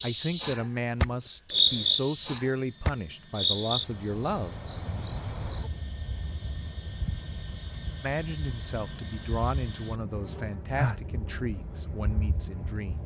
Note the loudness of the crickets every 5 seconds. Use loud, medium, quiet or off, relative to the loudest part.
loud, quiet, medium.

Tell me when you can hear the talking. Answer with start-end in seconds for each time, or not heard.
0.0-4.6, 8.0-13.0.